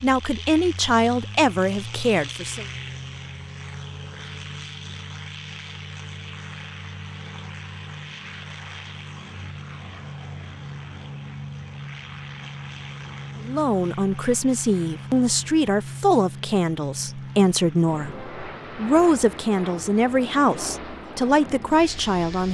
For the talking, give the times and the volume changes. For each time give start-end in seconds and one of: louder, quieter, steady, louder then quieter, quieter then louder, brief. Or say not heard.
0.0-2.6 brief
13.4-22.4 steady.